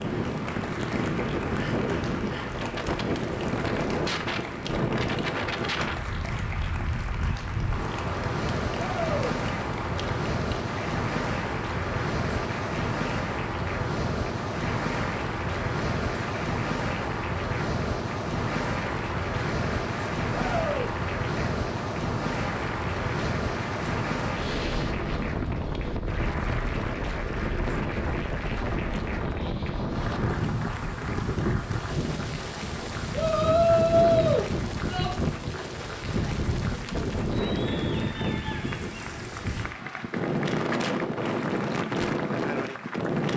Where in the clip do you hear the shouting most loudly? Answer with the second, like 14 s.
34 s.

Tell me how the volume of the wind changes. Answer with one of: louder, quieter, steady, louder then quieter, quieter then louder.
steady.